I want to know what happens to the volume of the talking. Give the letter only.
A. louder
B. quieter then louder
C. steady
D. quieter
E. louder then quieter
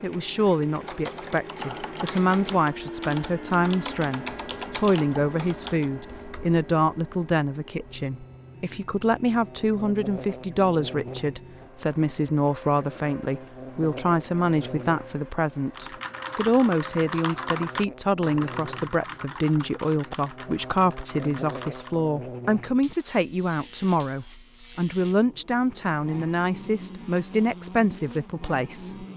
C.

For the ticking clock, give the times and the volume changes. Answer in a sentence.
You can't hear the ticking clock here.